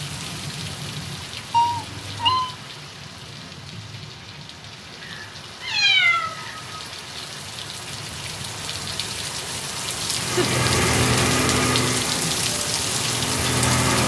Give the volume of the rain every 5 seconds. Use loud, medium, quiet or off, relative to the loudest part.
medium, medium, loud.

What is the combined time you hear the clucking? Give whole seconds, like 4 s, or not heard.
not heard.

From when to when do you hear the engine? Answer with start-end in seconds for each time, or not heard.
10.1-14.0.